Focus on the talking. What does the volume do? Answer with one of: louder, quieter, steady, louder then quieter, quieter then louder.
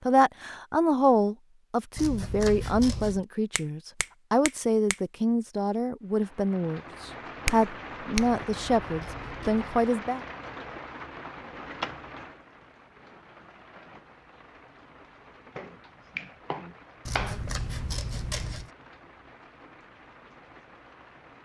steady.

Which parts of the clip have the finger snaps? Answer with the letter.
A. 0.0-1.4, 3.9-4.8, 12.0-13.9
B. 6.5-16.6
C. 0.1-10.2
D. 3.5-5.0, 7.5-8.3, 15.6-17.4
D.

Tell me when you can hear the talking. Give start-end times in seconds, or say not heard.
0.1-10.2.